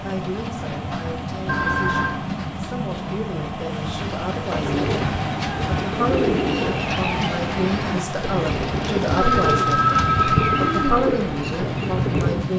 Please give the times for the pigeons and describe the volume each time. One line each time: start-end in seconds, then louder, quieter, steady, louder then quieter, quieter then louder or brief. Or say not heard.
4.5-12.5 steady.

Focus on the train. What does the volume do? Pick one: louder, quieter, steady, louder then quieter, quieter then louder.
steady.